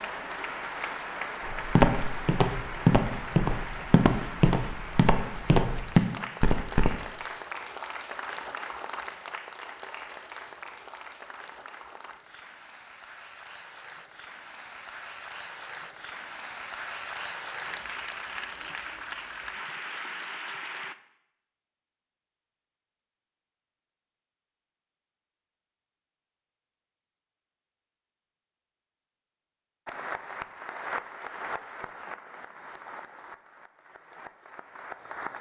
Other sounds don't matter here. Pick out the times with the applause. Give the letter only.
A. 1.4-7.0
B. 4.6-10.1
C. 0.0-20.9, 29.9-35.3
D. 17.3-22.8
C.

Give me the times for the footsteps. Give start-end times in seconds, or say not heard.
1.4-7.0.